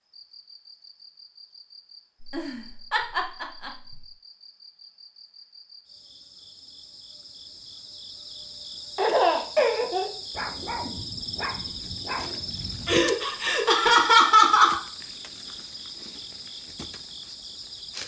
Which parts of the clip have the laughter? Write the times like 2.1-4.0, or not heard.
2.2-4.0, 8.9-10.1, 12.8-14.8.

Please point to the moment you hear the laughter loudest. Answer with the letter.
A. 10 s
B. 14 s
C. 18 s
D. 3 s
B.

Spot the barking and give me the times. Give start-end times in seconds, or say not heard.
10.3-13.1.